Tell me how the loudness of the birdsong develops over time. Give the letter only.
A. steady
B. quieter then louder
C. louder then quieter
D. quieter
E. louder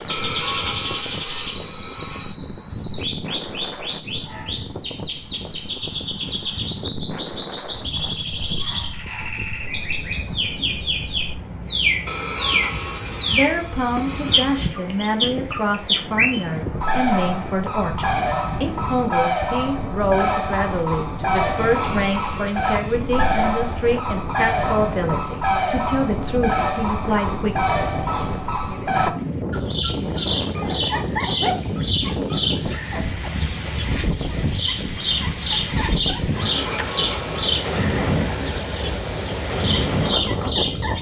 A.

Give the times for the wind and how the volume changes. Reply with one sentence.
The wind can be heard from 0.0 to 40.9 s, getting louder.